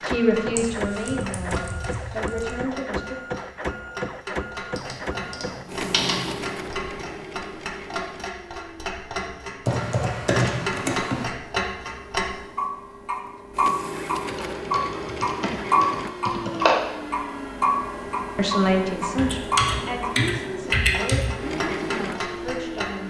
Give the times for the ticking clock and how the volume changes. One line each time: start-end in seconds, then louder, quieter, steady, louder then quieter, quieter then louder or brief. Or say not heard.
0.0-23.0 louder then quieter.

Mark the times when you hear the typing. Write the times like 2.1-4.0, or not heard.
0.6-2.5, 4.8-6.8, 9.7-11.2, 14.2-16.8, 19.1-21.4.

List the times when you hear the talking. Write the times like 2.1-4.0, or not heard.
0.0-3.1, 18.4-23.0.